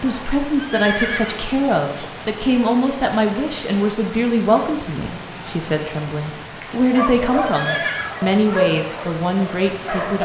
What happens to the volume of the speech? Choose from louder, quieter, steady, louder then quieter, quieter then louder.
steady.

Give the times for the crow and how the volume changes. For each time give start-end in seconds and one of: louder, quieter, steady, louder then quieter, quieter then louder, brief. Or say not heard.
not heard.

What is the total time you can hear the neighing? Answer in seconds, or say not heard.
2 s.